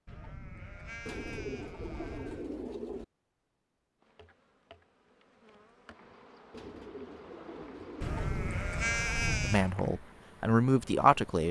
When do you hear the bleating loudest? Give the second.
9 s.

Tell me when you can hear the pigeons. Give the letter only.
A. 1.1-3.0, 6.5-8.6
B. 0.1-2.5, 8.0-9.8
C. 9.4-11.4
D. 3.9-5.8
A.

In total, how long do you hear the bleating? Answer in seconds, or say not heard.
4 s.